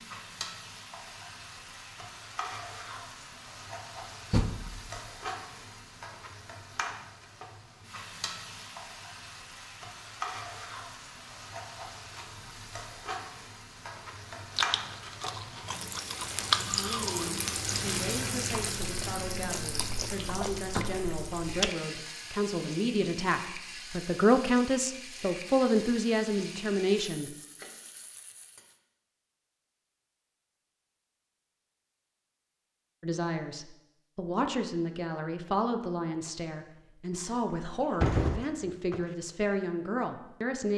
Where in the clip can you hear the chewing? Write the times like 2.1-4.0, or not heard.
14.5-21.7.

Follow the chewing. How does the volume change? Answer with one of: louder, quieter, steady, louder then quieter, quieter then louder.
louder then quieter.